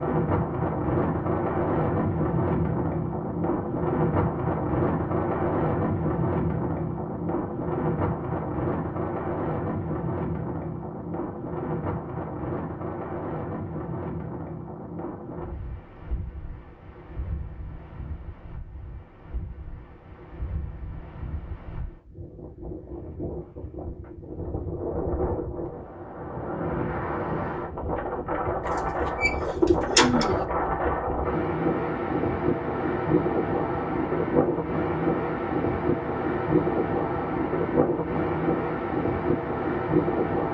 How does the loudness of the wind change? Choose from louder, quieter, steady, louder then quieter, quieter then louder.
quieter then louder.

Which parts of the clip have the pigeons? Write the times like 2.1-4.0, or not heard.
28.6-30.4.